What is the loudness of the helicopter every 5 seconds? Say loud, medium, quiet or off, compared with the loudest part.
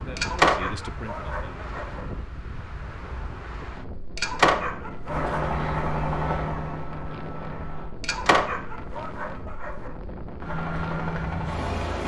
off, loud, loud.